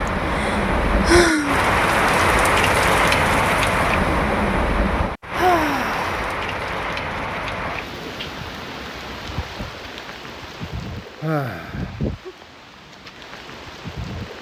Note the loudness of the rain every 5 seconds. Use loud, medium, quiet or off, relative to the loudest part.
loud, medium, quiet.